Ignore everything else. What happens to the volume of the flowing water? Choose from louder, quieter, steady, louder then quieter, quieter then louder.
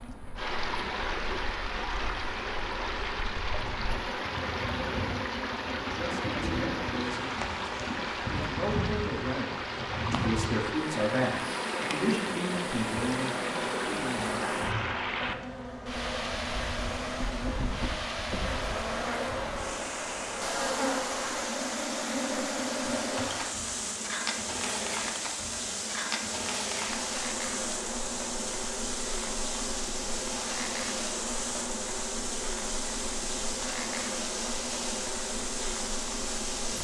steady.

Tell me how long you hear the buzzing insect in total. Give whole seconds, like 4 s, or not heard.
37 s.